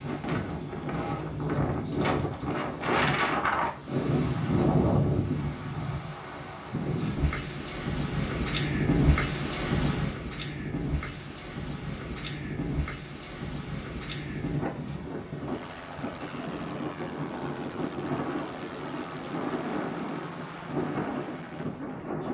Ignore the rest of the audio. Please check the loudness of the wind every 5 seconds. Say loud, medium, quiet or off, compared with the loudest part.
loud, loud, medium, medium, medium.